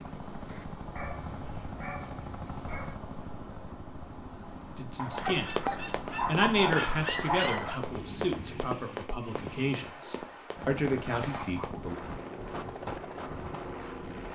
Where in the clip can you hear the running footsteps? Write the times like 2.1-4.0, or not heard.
5.1-13.7.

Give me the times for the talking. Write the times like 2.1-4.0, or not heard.
4.8-11.9.